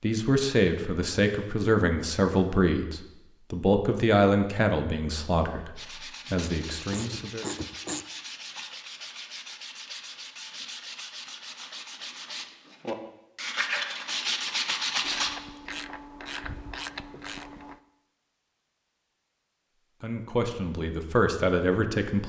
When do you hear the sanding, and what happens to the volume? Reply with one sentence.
The sanding can be heard from 5.8 to 15.4 s, getting louder.